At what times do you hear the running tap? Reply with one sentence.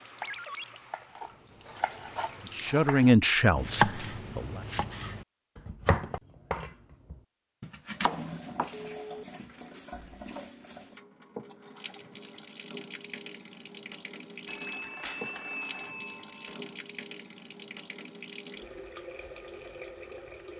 The running tap can be heard from 0.0 to 2.8 s and from 7.8 to 20.5 s.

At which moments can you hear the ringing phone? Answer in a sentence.
The ringing phone can be heard from 0.2 to 0.7 s, from 8.7 to 9.2 s and from 14.4 to 16.6 s.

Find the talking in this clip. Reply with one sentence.
The talking can be heard from 2.5 to 4.6 s.